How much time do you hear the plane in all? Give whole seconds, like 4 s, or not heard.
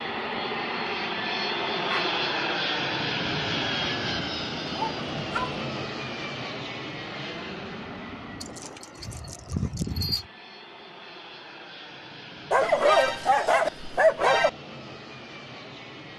16 s.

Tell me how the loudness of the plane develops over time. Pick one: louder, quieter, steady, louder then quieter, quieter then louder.
quieter.